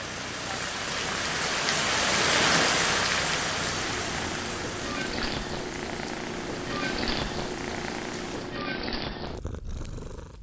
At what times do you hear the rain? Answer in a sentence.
The rain can be heard from 0.0 to 8.6 s.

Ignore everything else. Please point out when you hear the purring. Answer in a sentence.
You can hear the purring from 0.0 to 10.3 s.